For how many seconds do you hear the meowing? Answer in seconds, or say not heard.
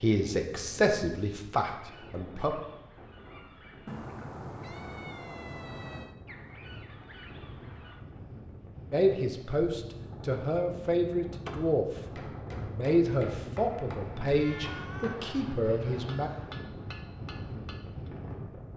3 s.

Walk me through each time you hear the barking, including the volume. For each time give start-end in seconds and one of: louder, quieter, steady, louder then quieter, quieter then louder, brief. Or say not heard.
not heard.